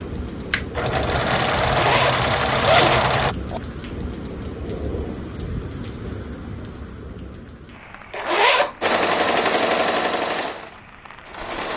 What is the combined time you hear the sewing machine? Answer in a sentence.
The sewing machine can be heard for 6 seconds in total.